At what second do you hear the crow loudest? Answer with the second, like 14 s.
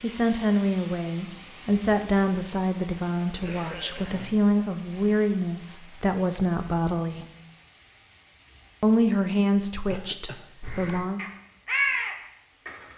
12 s.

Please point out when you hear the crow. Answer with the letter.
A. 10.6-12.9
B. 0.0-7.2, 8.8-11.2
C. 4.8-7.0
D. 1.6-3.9
A.